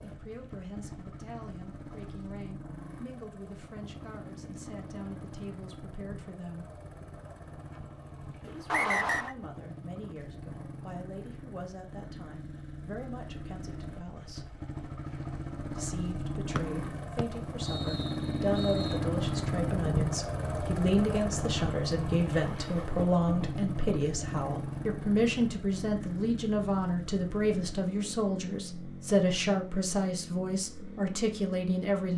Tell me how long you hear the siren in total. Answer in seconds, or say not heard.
not heard.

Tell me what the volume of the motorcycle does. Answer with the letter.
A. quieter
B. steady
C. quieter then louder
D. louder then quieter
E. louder
D.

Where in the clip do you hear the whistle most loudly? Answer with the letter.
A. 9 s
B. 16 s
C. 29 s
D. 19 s
A.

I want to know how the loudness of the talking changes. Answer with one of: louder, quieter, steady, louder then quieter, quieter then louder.
louder.